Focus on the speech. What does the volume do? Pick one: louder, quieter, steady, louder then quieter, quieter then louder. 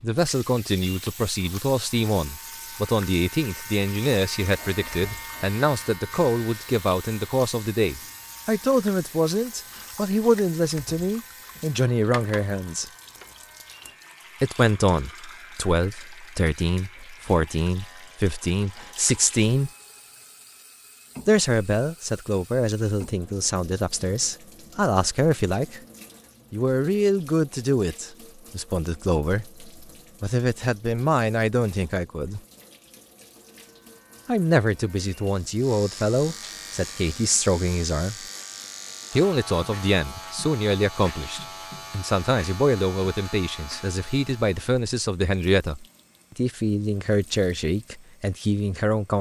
steady.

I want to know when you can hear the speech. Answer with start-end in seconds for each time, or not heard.
0.0-12.8, 14.4-19.7, 21.2-25.8, 26.5-32.4, 34.2-38.2, 39.1-49.1.